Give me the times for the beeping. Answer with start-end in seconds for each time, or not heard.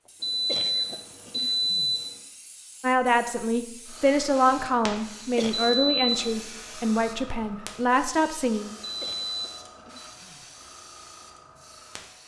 0.2-2.1, 5.5-6.5, 8.8-10.1.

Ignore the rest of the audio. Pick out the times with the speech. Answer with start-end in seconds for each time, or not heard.
2.8-8.7.